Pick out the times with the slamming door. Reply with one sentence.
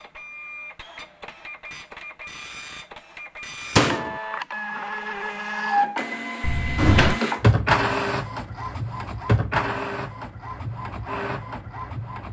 The slamming door can be heard from 3.8 to 4.2 s and from 6.4 to 7.2 s.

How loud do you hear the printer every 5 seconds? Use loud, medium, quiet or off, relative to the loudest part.
medium, loud, medium.